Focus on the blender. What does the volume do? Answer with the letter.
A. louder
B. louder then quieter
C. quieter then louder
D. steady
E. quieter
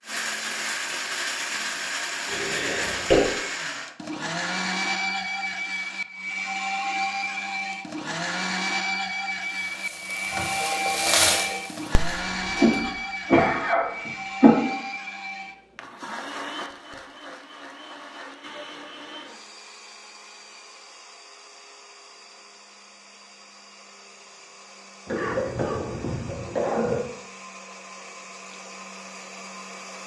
E.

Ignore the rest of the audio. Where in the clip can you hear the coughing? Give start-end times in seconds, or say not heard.
2.2-3.2, 12.6-14.6, 25.1-27.0.